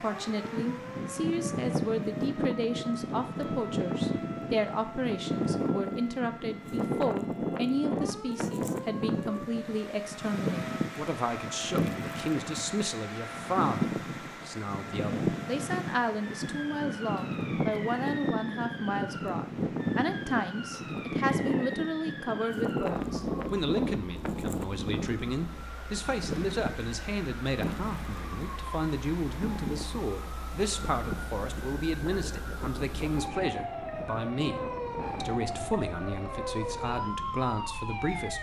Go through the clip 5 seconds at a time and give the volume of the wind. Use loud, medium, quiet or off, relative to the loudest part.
loud, loud, loud, loud, loud, medium, medium, quiet.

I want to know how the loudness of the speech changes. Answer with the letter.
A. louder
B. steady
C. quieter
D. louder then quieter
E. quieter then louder
B.